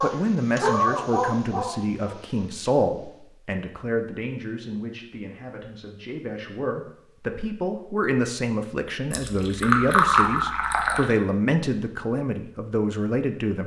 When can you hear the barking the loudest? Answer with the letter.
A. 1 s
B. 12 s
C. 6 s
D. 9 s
A.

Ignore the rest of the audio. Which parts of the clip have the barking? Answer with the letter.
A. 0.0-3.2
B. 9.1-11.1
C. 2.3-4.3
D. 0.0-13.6
A.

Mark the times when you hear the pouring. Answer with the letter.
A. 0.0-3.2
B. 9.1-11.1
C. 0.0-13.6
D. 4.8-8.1
B.